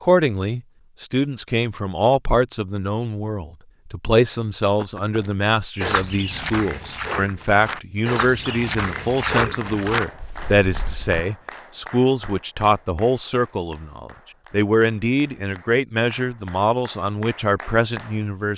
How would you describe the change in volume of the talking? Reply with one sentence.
The volume of the talking stays about the same.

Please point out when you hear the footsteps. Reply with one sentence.
You can hear the footsteps from 4.8 to 11.2 s.